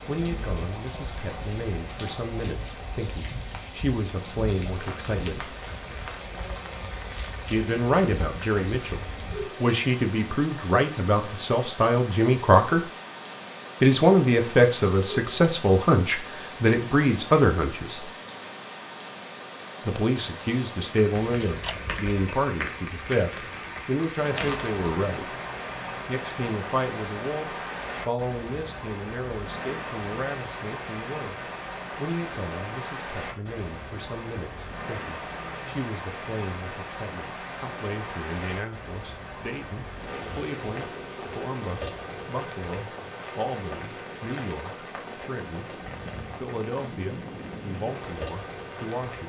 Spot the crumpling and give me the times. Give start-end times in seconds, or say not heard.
24.4-24.9.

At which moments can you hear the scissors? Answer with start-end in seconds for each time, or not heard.
21.1-21.9.